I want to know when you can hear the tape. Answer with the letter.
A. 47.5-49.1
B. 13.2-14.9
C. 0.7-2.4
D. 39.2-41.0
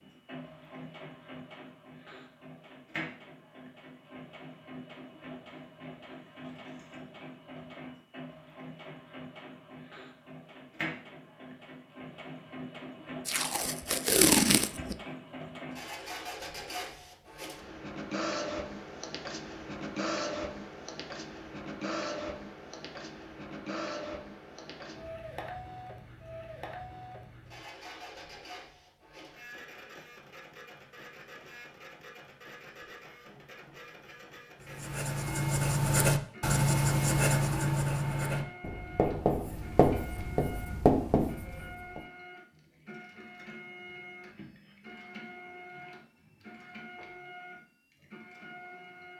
B.